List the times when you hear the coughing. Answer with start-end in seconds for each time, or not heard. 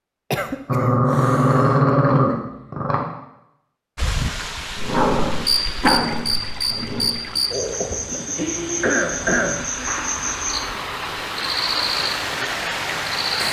0.3-1.9, 8.8-9.7.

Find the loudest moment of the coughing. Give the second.
9 s.